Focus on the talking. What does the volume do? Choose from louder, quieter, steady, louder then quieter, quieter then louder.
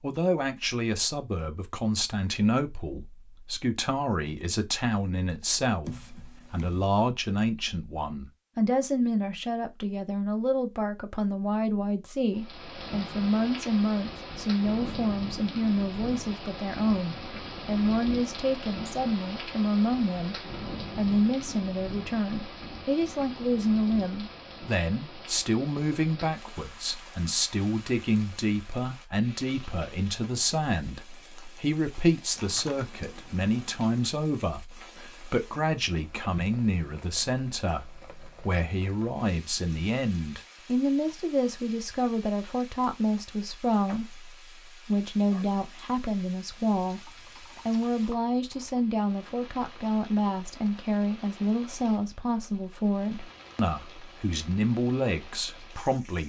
steady.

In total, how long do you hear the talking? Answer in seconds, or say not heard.
56 s.